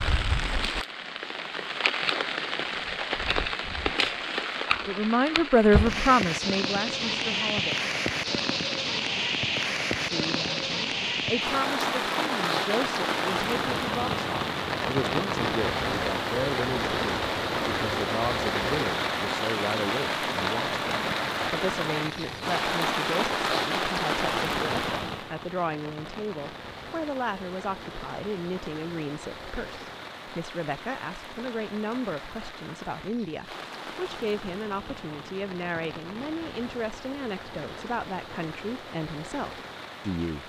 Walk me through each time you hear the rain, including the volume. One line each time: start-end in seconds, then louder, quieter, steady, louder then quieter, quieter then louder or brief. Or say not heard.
0.0-40.4 quieter.